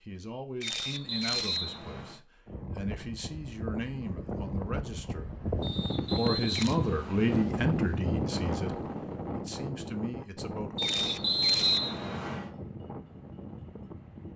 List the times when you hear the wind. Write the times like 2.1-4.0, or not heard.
2.5-14.3.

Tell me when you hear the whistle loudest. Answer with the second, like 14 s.
12 s.